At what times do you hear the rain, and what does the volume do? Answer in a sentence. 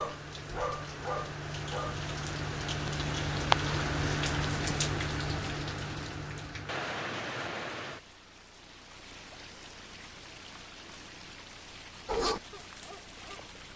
You can hear the rain from 0.0 to 13.7 s, getting louder then quieter.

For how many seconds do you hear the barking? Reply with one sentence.
You can hear the barking for 4 seconds altogether.